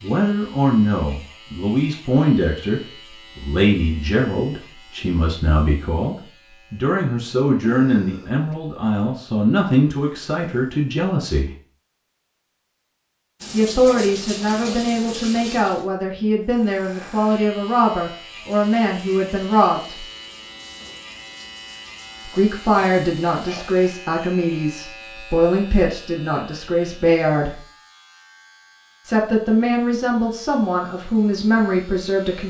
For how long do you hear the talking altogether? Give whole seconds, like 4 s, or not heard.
27 s.